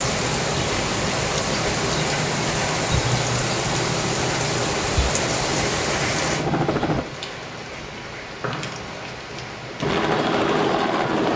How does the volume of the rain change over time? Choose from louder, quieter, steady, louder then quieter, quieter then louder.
quieter.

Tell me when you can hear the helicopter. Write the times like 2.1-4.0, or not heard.
1.6-7.0, 9.8-11.3.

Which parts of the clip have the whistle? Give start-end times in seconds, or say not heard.
8.4-9.1.